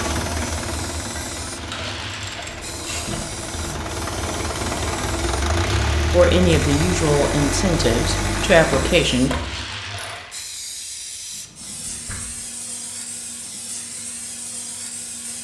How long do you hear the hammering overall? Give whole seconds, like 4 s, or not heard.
not heard.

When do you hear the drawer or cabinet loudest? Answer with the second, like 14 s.
3 s.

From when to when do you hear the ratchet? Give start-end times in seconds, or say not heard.
1.7-3.2, 8.7-10.2.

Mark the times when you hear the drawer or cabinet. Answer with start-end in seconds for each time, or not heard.
2.5-3.8, 11.3-12.4.